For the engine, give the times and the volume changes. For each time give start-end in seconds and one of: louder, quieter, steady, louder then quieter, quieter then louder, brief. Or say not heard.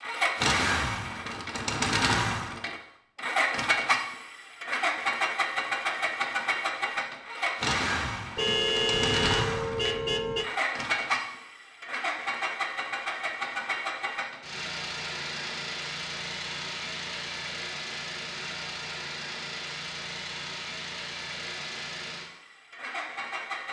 0.0-23.6 quieter.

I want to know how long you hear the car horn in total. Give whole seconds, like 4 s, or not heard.
2 s.